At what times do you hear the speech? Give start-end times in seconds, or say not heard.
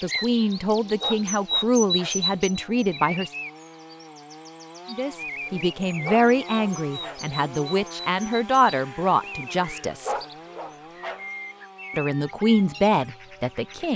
0.0-3.3, 4.9-10.2, 11.9-13.9.